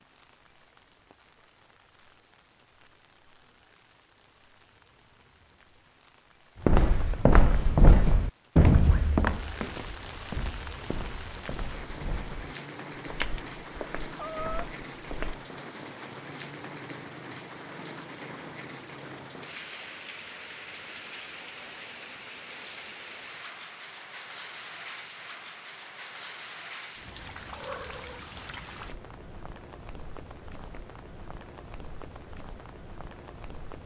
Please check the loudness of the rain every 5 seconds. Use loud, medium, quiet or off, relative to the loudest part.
quiet, medium, loud, loud, loud, loud, medium.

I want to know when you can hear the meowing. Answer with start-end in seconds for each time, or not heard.
14.2-14.8, 27.5-28.2.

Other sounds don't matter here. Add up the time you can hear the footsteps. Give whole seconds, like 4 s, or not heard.
9 s.